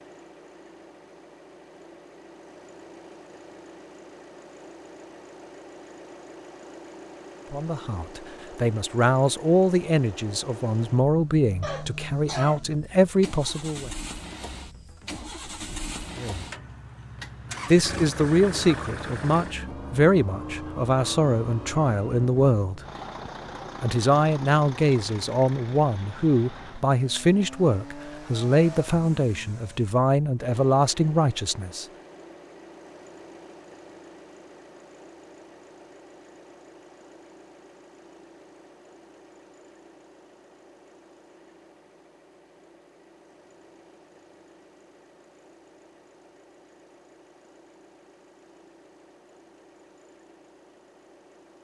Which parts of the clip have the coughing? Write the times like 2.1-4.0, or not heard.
11.6-12.7.